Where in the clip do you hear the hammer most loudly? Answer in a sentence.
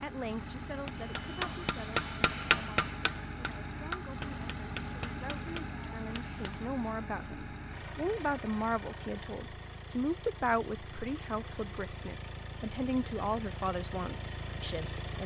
The volume of the hammer peaks at 3 seconds.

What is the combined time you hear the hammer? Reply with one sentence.
You can hear the hammer for 6 seconds altogether.